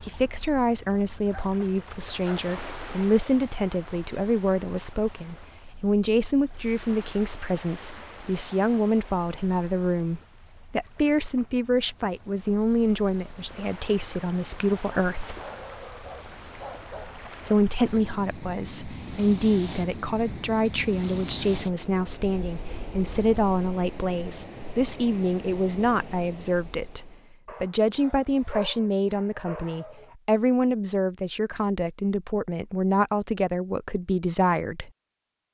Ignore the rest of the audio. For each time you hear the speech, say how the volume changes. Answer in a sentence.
The speech can be heard from 0.1 to 15.3 s, at a steady volume; and from 17.4 to 34.9 s, at a steady volume.